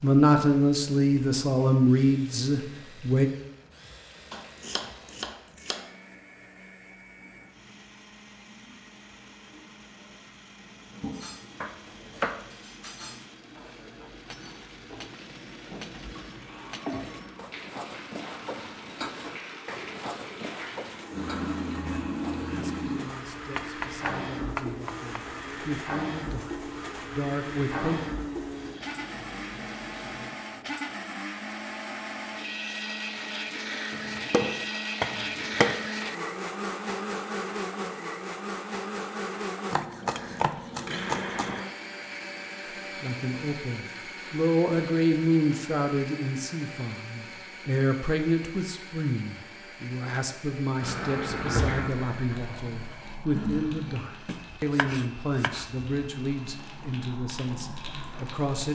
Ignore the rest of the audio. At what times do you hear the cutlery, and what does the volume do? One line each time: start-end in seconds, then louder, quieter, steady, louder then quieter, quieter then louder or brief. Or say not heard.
11.1-22.5 louder.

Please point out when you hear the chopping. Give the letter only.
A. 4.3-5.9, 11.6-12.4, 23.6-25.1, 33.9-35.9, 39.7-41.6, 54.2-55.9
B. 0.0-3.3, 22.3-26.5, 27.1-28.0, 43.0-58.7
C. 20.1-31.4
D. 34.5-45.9
A.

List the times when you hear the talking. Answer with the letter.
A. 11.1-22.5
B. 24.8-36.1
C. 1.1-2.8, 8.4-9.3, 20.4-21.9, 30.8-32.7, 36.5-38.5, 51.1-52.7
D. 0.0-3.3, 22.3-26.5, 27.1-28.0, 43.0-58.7
D.